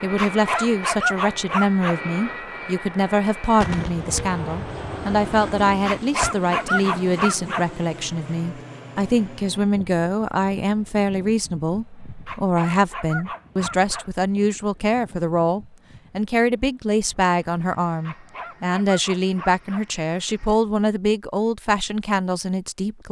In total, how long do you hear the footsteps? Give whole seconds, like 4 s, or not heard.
not heard.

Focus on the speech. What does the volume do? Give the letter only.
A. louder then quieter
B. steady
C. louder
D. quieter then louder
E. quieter
B.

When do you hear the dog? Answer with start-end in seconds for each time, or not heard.
0.1-2.0, 5.8-7.7, 12.2-14.1, 18.1-19.9.